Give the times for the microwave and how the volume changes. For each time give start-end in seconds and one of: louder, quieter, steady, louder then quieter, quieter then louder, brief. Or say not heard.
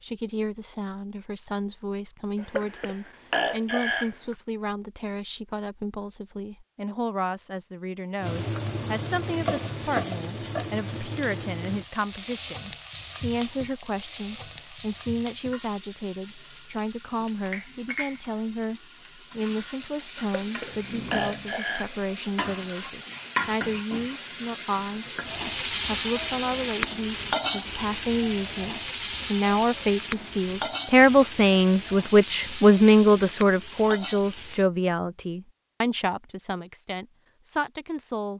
not heard.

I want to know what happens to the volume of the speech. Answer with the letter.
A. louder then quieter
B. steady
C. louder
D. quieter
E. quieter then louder
C.